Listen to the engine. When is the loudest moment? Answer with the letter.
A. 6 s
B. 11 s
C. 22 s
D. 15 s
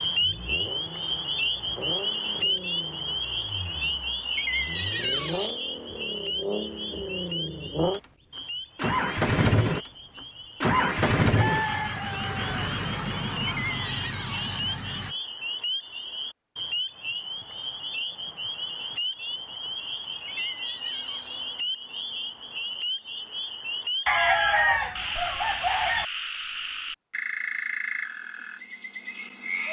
B.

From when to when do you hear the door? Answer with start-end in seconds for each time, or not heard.
4.2-5.6, 13.3-14.7, 20.1-21.5.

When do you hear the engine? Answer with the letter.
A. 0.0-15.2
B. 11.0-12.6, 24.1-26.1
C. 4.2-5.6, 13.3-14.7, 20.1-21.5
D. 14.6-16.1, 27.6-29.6
A.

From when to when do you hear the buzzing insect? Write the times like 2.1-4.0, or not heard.
not heard.